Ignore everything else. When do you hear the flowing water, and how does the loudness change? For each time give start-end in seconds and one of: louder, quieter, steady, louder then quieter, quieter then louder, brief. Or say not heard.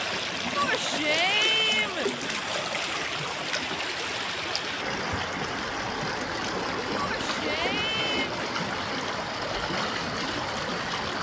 0.0-11.1 steady.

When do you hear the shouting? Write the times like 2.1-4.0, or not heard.
0.6-2.1, 7.0-8.4.